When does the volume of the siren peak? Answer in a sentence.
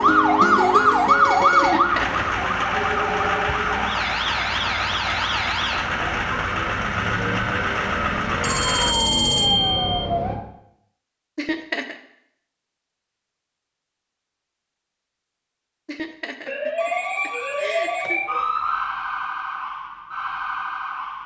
The volume of the siren peaks at 1 second.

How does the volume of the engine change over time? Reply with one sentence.
The volume of the engine goes up.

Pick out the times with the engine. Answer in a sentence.
The engine can be heard from 0.0 to 8.9 s.